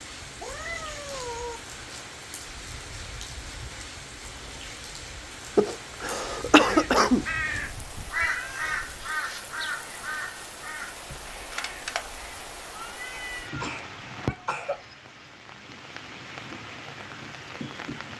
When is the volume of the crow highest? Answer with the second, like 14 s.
8 s.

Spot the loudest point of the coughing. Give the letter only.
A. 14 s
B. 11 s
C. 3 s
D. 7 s
D.